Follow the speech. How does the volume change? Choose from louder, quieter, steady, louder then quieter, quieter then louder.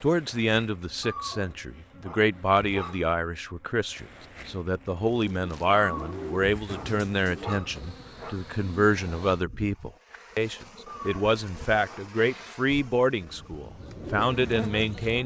steady.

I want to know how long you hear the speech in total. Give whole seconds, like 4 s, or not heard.
15 s.